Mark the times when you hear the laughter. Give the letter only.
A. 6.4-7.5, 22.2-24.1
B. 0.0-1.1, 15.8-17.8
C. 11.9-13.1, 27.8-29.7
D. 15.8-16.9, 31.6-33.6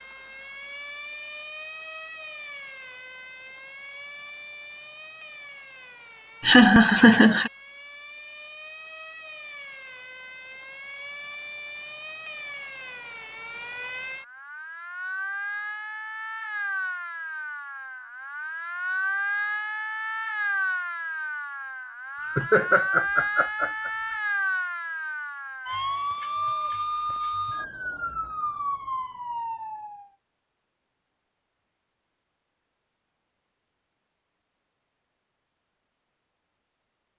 A.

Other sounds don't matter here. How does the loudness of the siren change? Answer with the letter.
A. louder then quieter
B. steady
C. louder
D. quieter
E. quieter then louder
C.